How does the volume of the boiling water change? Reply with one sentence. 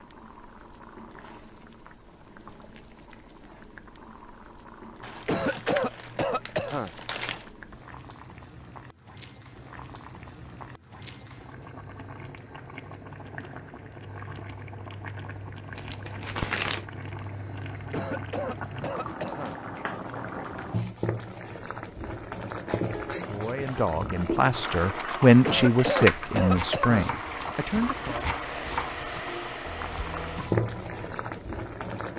The loudness of the boiling water goes up.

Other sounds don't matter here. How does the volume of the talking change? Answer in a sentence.
The volume of the talking goes up, then down.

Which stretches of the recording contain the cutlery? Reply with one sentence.
The cutlery can't be heard in this clip.